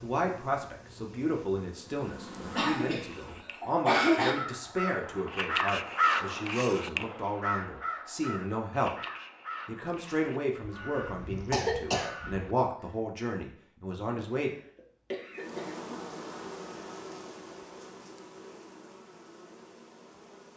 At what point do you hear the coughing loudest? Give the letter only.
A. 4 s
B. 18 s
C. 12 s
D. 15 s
A.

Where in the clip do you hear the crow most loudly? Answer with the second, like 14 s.
6 s.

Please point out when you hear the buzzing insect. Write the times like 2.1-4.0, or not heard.
0.0-3.5, 15.3-20.5.